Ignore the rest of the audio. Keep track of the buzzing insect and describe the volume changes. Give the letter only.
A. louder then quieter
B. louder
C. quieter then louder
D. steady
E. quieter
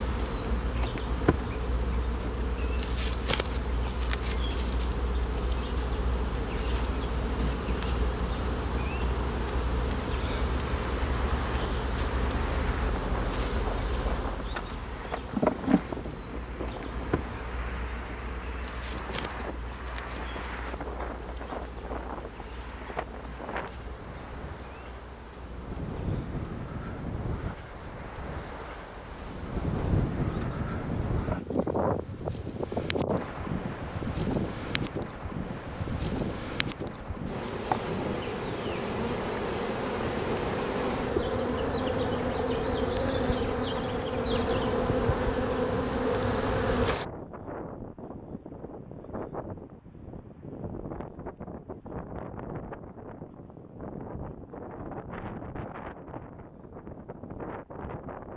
C.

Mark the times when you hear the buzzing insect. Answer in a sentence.
You can hear the buzzing insect from 0.0 to 47.0 s.